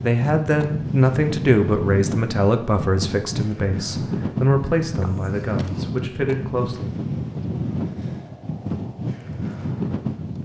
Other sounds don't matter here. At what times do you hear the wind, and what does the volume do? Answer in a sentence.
You can hear the wind from 0.0 to 10.4 s, at a steady volume.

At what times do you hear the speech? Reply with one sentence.
The speech can be heard from 0.0 to 6.8 s.